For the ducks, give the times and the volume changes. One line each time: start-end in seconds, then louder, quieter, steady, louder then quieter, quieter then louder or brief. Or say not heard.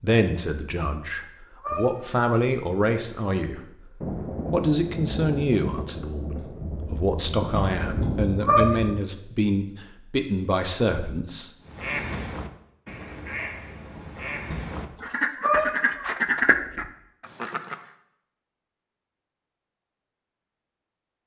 11.7-17.8 louder.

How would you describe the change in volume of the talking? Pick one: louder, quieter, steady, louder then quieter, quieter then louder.
steady.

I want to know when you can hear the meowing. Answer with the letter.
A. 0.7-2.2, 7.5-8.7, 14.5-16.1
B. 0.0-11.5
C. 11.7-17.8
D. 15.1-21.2
A.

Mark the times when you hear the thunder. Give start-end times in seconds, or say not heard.
4.0-8.9.